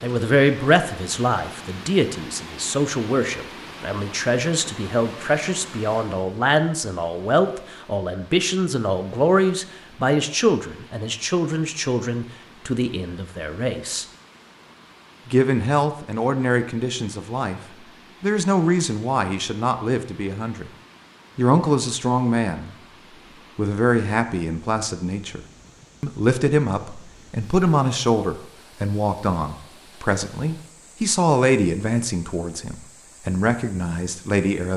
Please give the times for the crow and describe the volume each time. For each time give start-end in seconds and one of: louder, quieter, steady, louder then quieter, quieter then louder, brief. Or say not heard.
not heard.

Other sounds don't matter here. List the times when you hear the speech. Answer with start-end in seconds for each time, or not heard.
0.0-14.1, 15.2-17.6, 18.2-20.7, 21.4-22.8, 23.6-25.4, 26.0-34.7.